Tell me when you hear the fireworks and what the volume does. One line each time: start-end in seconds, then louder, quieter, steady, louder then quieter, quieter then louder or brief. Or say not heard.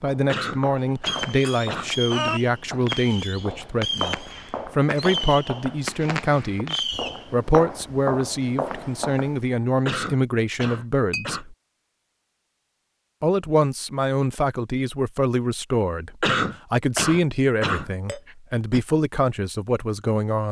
1.0-7.3 steady.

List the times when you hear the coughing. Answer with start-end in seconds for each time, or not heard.
0.2-1.9, 9.8-11.4, 16.2-18.9.